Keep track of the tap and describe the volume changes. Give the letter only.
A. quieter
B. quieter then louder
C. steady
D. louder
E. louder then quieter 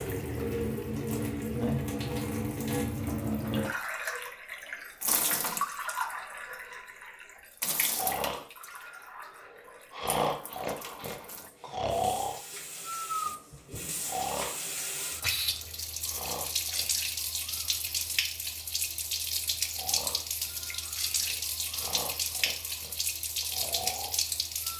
B.